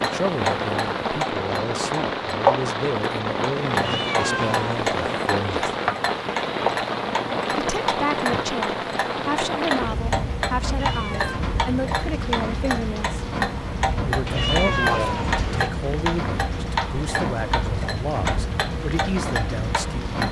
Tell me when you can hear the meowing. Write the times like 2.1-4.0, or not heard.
3.7-5.2, 10.7-11.4, 14.2-15.7.